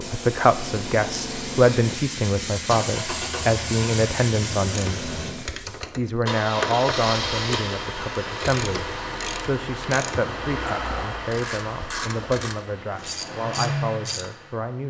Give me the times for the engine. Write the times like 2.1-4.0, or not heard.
0.0-14.8.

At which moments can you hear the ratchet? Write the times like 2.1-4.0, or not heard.
4.7-14.3.